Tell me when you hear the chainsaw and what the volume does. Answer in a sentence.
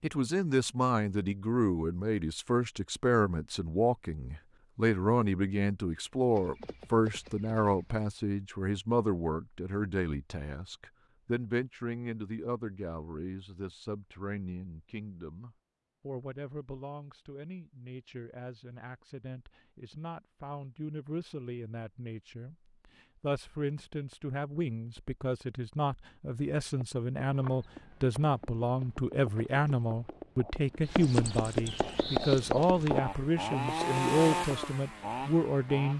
You can hear the chainsaw from 31.8 to 35.9 s, getting louder then quieter.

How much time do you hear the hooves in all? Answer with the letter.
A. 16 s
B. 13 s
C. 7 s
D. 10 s
D.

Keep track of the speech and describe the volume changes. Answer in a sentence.
The loudness of the speech goes down, then up.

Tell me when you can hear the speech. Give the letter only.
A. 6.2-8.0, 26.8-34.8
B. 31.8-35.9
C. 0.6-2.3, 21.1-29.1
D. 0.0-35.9
D.